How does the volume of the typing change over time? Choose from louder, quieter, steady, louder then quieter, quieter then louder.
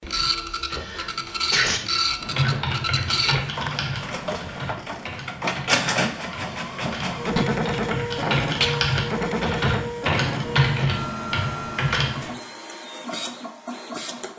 quieter then louder.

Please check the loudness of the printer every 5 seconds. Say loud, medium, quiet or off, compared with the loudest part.
loud, loud, medium.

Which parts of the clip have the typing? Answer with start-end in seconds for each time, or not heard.
2.2-12.3.